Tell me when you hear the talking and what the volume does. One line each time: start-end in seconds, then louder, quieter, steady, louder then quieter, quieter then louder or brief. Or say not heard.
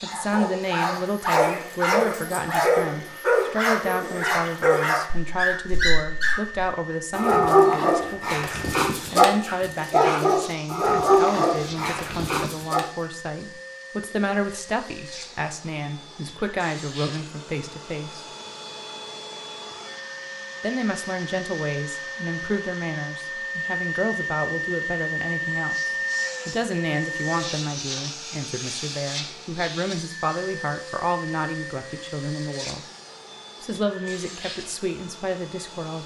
0.0-18.2 steady
20.6-32.9 steady
33.6-36.0 brief.